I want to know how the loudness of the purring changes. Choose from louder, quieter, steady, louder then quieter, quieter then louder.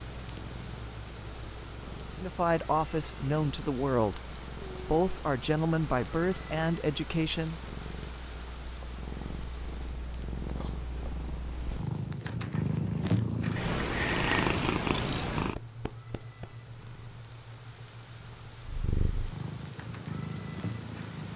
louder then quieter.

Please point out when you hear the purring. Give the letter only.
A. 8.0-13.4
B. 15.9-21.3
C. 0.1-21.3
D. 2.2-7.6
C.